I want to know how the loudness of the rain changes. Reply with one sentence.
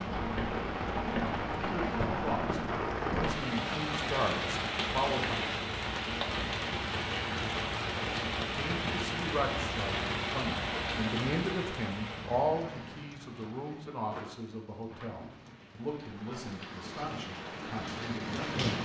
The loudness of the rain goes down.